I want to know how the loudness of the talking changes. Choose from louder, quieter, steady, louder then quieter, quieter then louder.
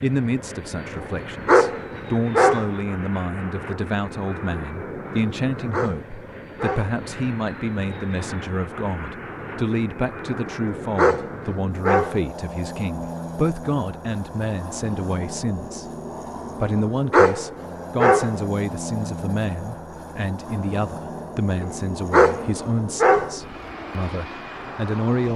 steady.